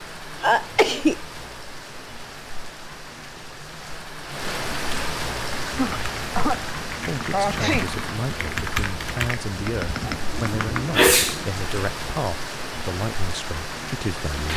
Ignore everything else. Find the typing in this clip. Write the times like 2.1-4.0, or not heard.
5.3-11.3.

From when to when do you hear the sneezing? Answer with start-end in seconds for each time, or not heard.
0.4-1.1, 5.7-6.6, 7.3-7.9, 10.0-11.4.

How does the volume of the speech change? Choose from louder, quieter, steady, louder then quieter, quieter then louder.
steady.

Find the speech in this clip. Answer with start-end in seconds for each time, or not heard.
7.0-14.5.